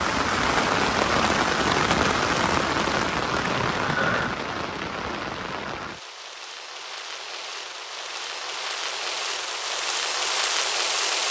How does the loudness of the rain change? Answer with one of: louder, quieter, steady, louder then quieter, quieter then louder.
quieter then louder.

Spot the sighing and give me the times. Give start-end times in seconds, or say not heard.
3.4-4.3.